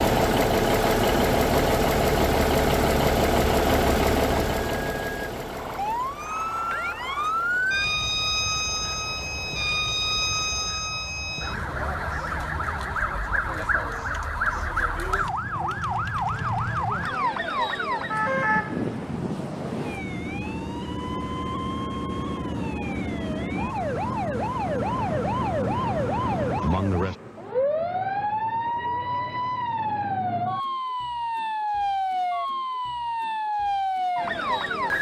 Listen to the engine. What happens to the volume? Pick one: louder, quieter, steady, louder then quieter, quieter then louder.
quieter.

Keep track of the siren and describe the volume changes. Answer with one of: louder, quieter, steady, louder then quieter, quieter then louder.
steady.